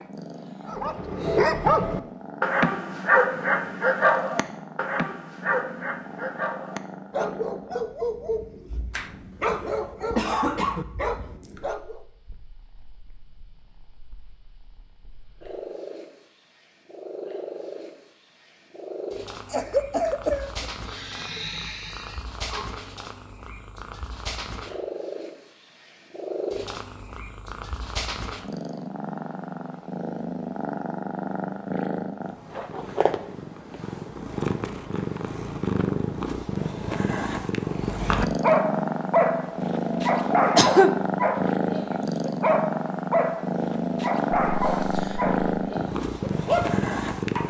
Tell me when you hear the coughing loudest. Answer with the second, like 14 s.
41 s.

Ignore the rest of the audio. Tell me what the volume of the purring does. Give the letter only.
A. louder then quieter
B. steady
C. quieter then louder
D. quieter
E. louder
E.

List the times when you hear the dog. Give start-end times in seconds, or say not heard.
0.7-12.0, 37.8-47.4.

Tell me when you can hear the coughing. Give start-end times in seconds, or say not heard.
8.9-10.8, 19.4-20.5, 40.5-41.0.